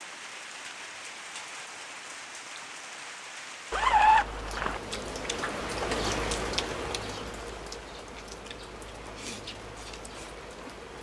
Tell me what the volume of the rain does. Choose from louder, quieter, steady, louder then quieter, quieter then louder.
louder then quieter.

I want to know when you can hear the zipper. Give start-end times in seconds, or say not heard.
3.7-4.8.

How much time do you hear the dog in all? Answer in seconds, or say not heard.
not heard.